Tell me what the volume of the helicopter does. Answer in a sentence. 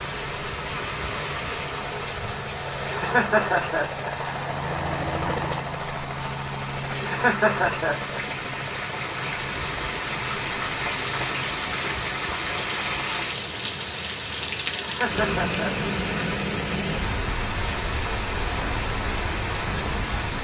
The volume of the helicopter goes up, then down.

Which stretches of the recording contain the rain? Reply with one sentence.
You can hear the rain from 0.0 to 20.3 s.